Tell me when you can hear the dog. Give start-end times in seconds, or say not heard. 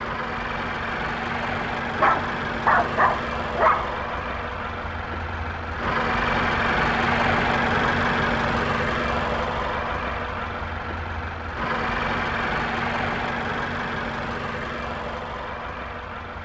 1.9-4.0.